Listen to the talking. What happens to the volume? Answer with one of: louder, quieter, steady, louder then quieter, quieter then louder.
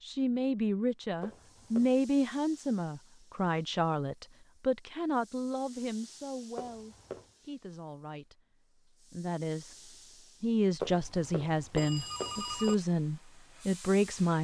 quieter then louder.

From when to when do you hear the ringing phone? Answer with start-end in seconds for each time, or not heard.
1.2-1.9, 6.5-7.3, 10.8-12.8.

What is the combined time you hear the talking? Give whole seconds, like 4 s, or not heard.
14 s.